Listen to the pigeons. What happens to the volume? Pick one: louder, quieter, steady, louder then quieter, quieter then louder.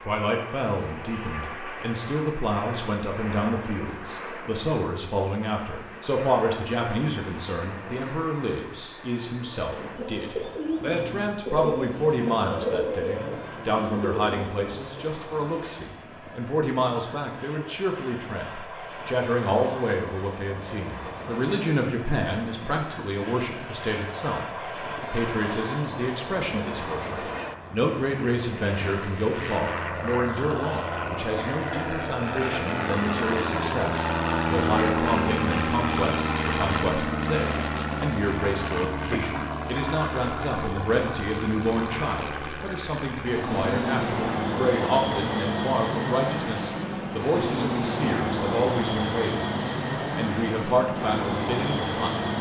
steady.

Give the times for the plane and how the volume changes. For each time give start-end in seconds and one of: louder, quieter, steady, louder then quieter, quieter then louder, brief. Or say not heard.
0.0-52.3 louder.